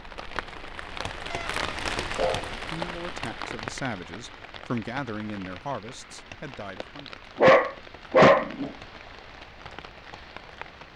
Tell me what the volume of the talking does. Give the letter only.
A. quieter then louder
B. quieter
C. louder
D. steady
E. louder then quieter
E.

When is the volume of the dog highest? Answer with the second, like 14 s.
8 s.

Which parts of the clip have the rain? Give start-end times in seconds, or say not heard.
0.0-10.9.